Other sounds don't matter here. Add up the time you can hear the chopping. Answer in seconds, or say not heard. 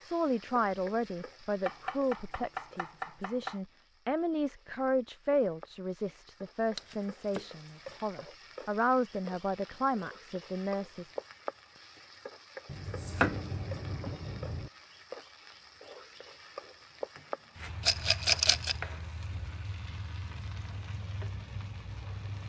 7 s.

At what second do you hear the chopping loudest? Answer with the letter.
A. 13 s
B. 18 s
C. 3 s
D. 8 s
A.